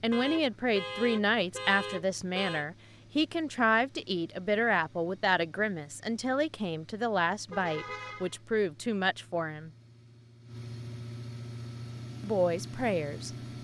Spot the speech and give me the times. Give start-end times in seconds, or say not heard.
0.0-9.7, 12.2-13.3.